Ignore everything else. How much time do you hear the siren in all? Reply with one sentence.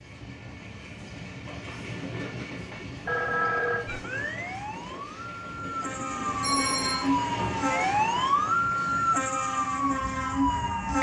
The siren can be heard for 7 seconds in total.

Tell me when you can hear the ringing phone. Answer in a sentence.
You can hear the ringing phone from 3.0 to 3.9 s and from 6.0 to 7.1 s.